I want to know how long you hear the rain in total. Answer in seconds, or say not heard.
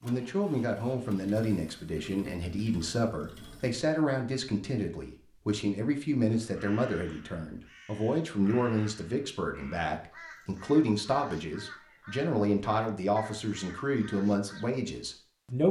not heard.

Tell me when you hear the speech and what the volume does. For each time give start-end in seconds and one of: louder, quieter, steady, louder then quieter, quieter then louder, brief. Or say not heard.
0.0-15.6 steady.